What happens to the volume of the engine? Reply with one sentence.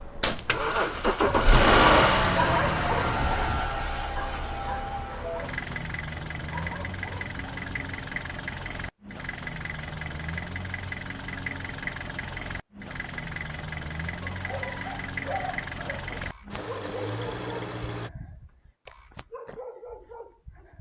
The loudness of the engine goes down.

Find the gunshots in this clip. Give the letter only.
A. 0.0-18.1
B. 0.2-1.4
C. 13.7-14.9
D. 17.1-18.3
B.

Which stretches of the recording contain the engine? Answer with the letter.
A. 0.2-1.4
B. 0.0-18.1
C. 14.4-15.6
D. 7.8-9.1
B.